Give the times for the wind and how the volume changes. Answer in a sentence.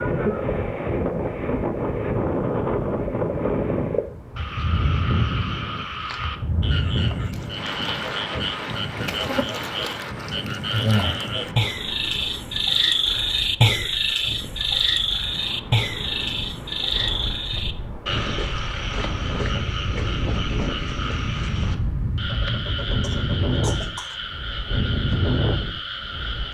The wind can be heard from 0.0 to 26.5 s, getting quieter then louder.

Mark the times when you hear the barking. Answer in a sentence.
You can't hear the barking here.